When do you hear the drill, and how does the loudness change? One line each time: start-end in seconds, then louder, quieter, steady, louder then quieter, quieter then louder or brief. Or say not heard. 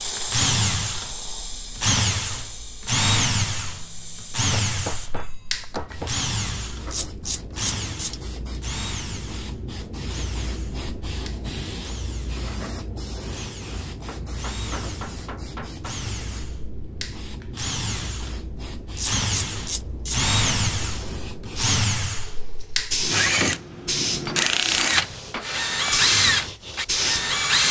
0.0-27.6 quieter then louder.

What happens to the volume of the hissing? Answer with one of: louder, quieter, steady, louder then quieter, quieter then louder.
louder.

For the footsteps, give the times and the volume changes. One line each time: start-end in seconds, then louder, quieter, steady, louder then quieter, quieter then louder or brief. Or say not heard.
not heard.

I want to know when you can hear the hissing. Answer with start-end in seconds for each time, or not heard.
0.0-27.4.